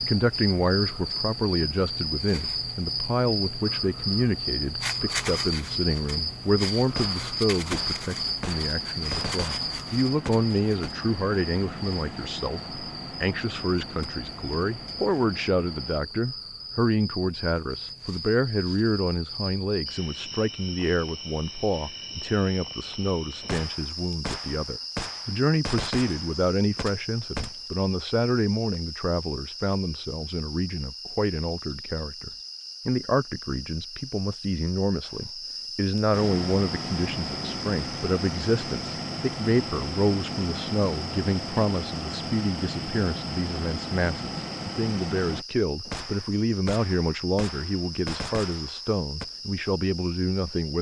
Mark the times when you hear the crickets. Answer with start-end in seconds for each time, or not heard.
0.0-50.7.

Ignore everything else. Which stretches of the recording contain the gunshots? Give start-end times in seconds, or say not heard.
6.8-10.9, 23.4-27.6, 45.9-49.3.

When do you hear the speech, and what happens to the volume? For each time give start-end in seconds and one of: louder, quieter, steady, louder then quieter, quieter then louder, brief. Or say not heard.
0.0-50.7 steady.